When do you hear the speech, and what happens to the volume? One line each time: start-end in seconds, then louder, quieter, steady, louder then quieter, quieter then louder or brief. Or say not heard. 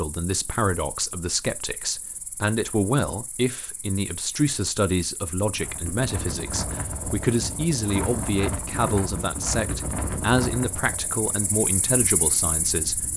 0.0-13.1 steady.